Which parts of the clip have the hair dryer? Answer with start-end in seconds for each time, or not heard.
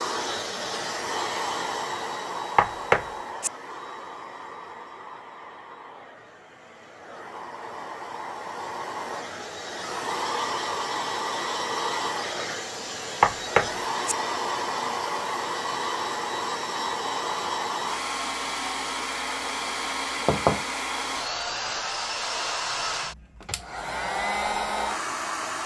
0.0-25.6.